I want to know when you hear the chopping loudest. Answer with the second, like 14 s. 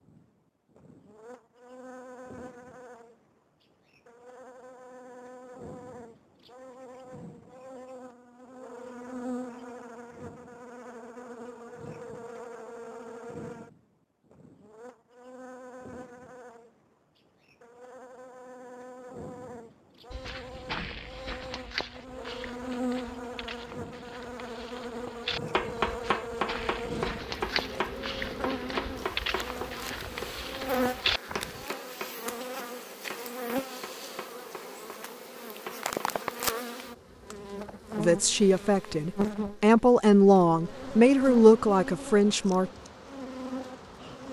26 s.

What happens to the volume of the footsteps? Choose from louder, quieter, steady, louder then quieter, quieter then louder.
quieter then louder.